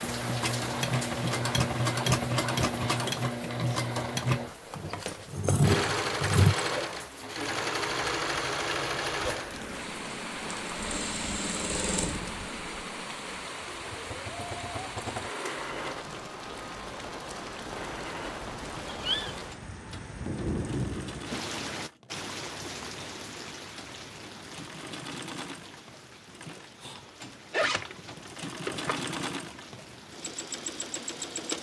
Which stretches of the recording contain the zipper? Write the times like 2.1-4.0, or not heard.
27.5-29.1.